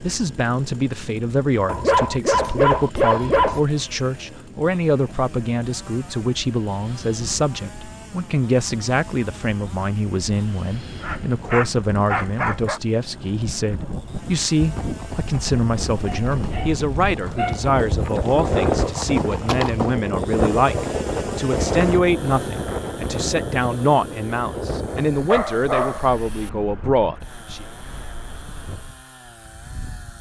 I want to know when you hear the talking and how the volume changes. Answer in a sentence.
You can hear the talking from 0.0 to 27.6 s, at a steady volume.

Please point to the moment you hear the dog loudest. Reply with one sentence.
The loudest moment of the dog is at 3 seconds.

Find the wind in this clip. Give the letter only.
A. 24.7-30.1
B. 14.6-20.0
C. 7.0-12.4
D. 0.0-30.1
D.